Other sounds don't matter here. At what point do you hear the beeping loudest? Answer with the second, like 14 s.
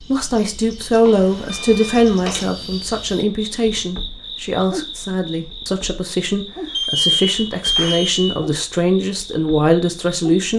7 s.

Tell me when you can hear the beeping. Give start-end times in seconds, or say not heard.
1.1-2.5, 6.7-8.4.